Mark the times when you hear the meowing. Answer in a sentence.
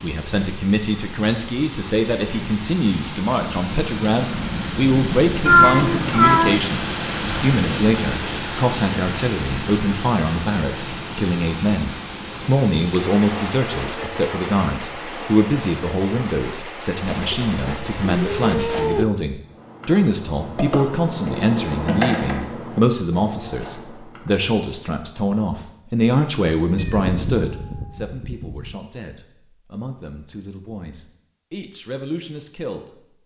The meowing can be heard from 5.5 to 6.6 s, from 17.1 to 19.1 s and from 26.8 to 28.8 s.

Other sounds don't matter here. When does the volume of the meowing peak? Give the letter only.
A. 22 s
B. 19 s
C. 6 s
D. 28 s
C.